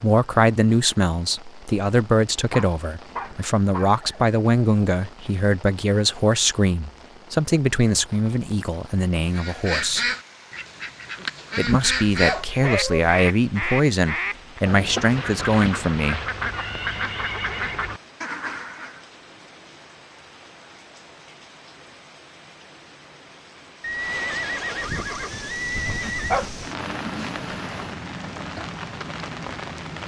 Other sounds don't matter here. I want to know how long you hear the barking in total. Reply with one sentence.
You can hear the barking for 5 seconds altogether.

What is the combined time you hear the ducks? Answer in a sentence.
You can hear the ducks for 10 seconds altogether.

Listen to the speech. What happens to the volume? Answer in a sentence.
The volume of the speech stays about the same.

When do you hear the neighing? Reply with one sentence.
The neighing can be heard from 3.2 to 4.4 s, from 16.5 to 17.9 s and from 23.8 to 26.4 s.